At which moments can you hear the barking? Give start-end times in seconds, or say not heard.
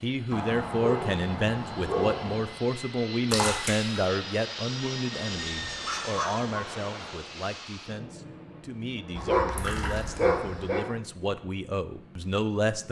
0.3-2.6, 5.5-6.5, 9.2-10.8.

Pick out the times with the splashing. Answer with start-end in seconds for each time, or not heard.
3.3-3.9, 9.6-10.2.